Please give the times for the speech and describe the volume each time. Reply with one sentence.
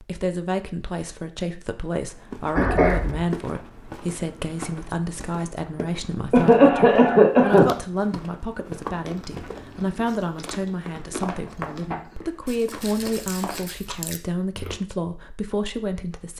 The speech can be heard from 0.0 to 16.3 s, at a steady volume.